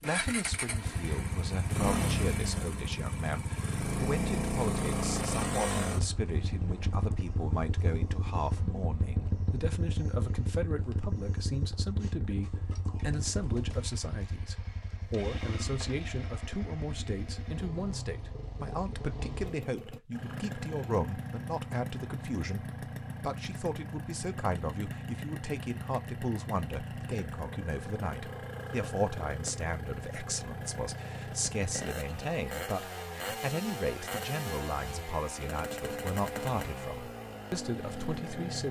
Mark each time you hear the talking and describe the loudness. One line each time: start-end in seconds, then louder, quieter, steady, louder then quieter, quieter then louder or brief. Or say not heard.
0.0-38.6 steady.